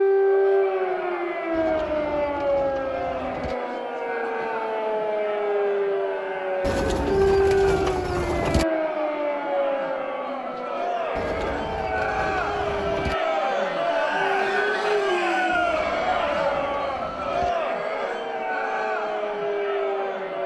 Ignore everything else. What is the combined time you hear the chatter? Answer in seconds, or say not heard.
20 s.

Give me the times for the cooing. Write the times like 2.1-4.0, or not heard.
1.5-3.5, 6.6-8.7, 11.2-13.2, 15.5-17.6.